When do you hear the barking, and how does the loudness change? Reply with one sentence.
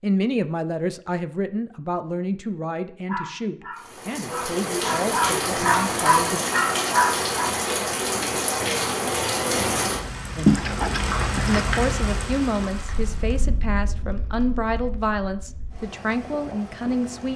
You can hear the barking from 3.0 to 7.5 s, getting louder.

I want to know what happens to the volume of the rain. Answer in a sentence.
The volume of the rain goes down.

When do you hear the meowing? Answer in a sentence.
The meowing can be heard from 10.4 to 11.6 s.